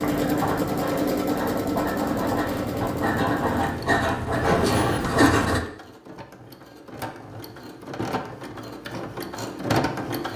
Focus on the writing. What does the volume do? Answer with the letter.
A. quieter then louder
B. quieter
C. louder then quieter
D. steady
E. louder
E.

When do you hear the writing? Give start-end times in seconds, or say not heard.
0.0-5.7.